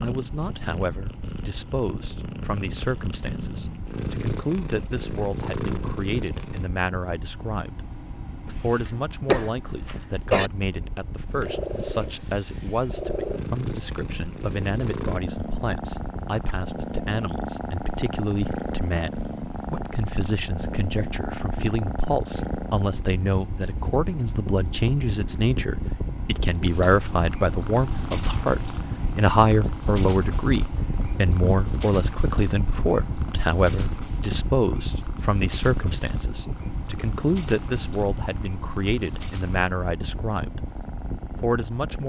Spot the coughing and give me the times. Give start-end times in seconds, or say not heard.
8.4-10.5.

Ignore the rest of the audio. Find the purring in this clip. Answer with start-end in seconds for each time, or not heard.
0.0-6.7, 11.3-42.0.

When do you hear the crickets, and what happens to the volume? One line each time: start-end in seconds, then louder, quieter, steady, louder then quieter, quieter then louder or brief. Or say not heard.
not heard.